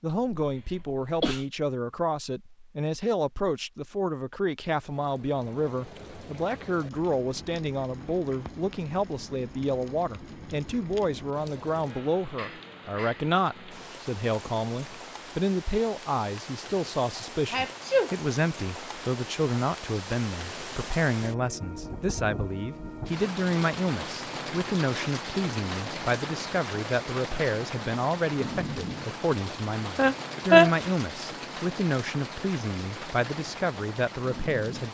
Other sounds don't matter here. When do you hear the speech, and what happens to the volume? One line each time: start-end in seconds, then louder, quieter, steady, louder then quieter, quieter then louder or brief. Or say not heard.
0.0-34.9 steady.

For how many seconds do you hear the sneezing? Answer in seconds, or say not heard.
3 s.